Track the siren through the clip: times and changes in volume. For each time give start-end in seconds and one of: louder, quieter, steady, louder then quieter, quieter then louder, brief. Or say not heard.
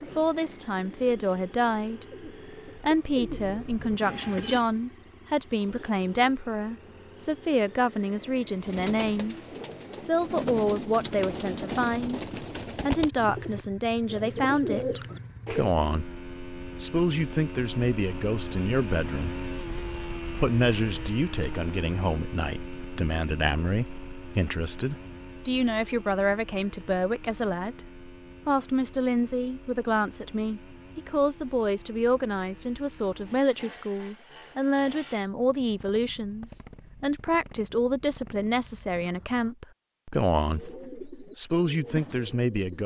not heard.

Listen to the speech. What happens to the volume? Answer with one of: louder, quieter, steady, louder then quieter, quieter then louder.
steady.